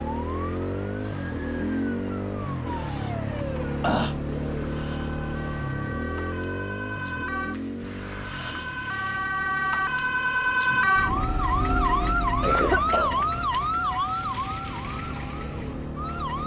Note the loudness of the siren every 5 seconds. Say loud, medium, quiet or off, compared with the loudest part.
quiet, medium, loud, medium.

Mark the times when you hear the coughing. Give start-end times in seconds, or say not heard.
2.6-4.2, 12.4-13.7.